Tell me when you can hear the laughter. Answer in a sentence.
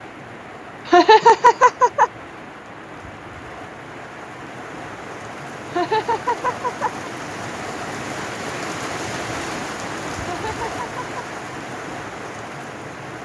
The laughter can be heard from 0.8 to 2.1 s, from 5.7 to 7.1 s and from 10.2 to 11.2 s.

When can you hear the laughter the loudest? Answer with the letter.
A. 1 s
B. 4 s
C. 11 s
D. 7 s
A.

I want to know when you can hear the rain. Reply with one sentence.
You can hear the rain from 0.0 to 13.2 s.